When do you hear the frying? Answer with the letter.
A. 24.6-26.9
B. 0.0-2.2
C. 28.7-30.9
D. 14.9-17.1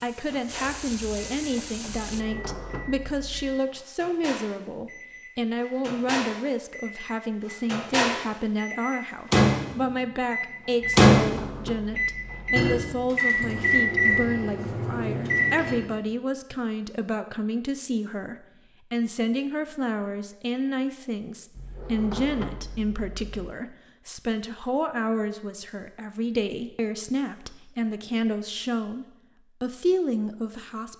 B.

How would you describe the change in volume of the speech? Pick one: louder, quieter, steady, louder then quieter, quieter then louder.
steady.